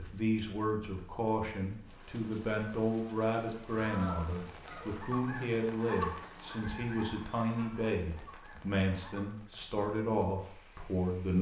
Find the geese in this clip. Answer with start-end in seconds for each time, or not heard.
3.8-9.2.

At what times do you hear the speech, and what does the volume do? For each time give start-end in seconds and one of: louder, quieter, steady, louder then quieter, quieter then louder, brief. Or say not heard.
0.0-11.3 steady.